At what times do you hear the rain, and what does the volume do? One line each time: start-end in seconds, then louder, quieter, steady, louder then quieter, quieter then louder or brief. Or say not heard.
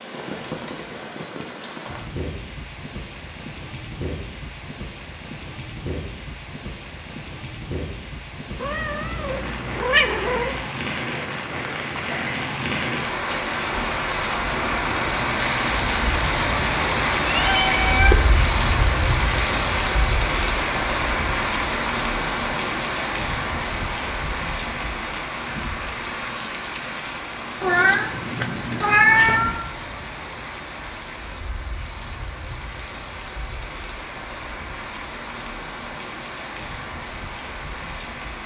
0.0-38.4 louder then quieter.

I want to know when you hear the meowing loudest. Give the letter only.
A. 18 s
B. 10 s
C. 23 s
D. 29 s
D.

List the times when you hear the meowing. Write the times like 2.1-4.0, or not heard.
8.6-10.7, 17.2-18.1, 27.6-29.6.